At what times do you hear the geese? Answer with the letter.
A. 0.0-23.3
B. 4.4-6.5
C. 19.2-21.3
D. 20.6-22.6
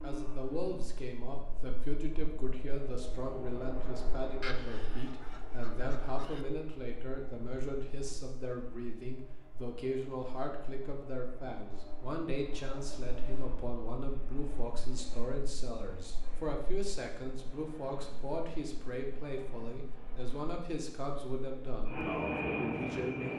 B.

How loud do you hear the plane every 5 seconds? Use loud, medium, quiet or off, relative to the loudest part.
medium, quiet, quiet, quiet, loud.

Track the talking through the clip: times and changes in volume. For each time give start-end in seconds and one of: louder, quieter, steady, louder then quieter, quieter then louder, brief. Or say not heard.
0.0-23.3 steady.